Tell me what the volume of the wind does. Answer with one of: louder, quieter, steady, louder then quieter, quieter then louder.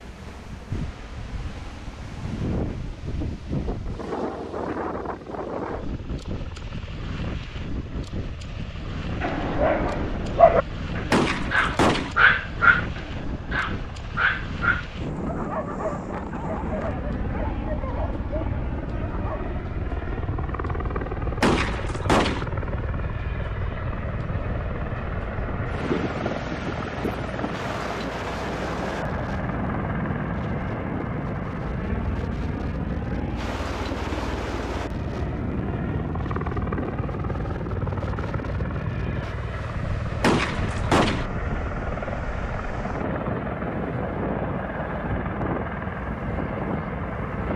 steady.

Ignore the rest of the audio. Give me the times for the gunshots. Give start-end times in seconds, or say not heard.
11.1-12.2, 21.4-22.4, 40.2-41.2.